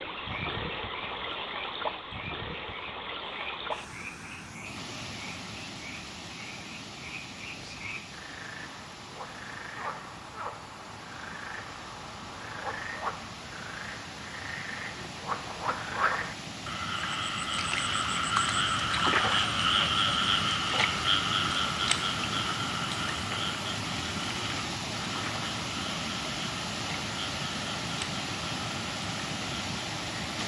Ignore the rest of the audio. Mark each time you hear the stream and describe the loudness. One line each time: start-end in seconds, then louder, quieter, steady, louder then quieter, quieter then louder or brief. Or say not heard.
0.0-30.4 quieter then louder.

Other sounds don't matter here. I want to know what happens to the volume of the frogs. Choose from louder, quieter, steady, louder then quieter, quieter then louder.
louder then quieter.